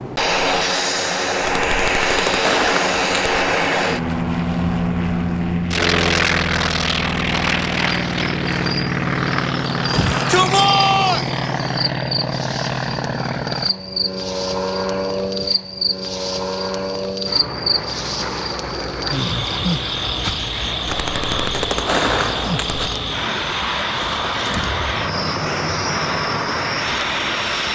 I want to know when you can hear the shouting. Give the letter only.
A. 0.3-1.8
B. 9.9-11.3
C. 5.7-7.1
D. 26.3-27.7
B.